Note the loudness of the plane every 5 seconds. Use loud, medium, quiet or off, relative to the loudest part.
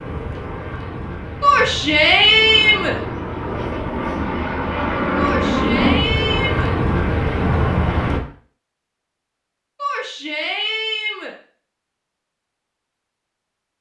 medium, loud, off.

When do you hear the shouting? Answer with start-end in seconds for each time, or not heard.
1.4-3.0, 5.2-6.7, 9.8-11.3.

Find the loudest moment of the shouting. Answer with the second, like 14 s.
2 s.